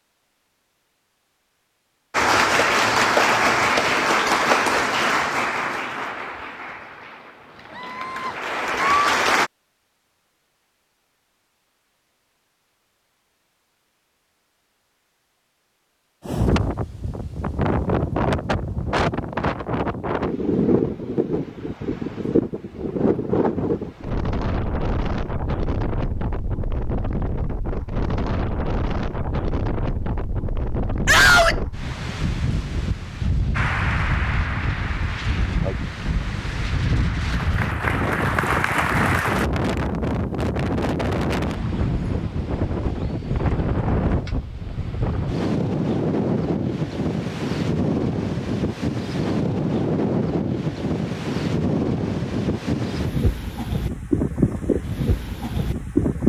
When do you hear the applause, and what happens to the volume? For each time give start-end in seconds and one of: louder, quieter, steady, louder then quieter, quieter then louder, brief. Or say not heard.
2.1-9.5 quieter then louder
33.5-39.5 quieter then louder.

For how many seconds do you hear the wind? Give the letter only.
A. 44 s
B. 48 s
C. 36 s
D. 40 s
D.